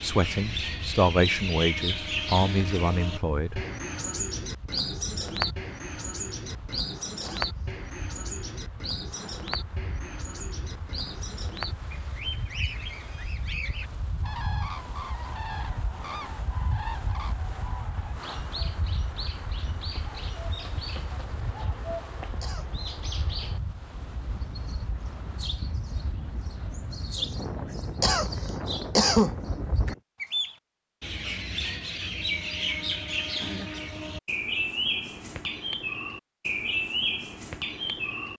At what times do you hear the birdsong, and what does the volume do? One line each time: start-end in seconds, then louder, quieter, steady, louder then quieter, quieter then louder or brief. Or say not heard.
0.0-38.3 quieter then louder.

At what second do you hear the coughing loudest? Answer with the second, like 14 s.
29 s.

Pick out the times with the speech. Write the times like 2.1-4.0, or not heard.
0.0-3.6.